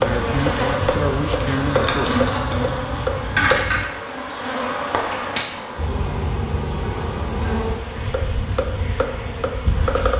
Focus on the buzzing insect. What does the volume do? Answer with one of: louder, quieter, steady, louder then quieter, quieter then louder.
quieter.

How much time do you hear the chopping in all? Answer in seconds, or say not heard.
6 s.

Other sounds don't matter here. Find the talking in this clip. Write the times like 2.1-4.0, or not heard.
0.0-2.2.